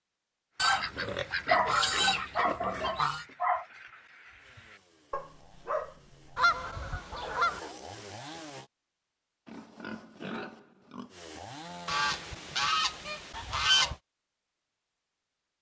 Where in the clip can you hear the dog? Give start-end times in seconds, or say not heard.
0.6-7.8.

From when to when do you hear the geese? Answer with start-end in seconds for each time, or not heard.
0.6-3.2, 6.3-7.6, 11.8-13.9.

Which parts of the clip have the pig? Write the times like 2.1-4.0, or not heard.
0.9-3.4, 9.4-11.2.